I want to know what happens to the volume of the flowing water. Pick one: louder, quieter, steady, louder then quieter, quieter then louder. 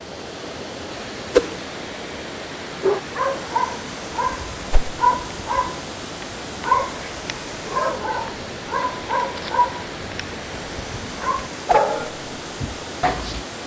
steady.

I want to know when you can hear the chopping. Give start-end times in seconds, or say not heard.
not heard.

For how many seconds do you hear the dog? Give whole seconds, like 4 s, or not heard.
11 s.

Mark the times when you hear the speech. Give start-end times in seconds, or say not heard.
not heard.